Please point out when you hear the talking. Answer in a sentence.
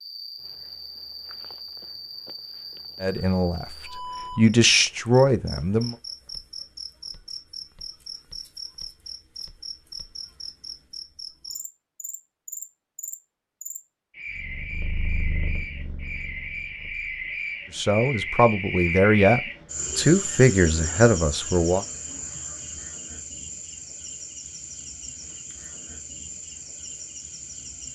You can hear the talking from 3.0 to 3.6 s, from 4.3 to 6.0 s and from 17.7 to 21.9 s.